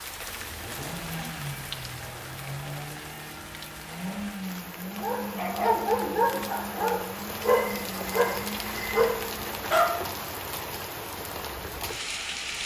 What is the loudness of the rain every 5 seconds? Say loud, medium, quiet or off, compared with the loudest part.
medium, loud, loud.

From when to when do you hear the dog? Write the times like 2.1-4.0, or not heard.
5.0-9.9.